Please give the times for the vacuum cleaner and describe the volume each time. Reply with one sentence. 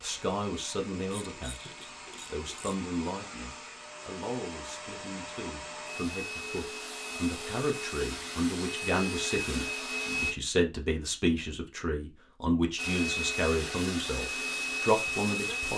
You can hear the vacuum cleaner from 0.0 to 10.3 s, getting louder; and briefly from 12.8 to 15.7 s.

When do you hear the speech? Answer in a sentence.
You can hear the speech from 0.0 to 15.7 s.